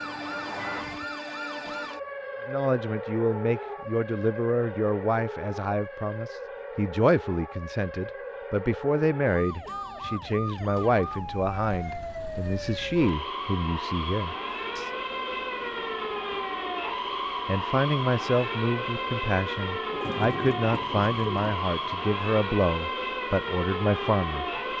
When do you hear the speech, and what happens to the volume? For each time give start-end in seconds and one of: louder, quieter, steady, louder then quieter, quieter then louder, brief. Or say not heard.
2.5-14.9 steady
17.4-24.7 steady.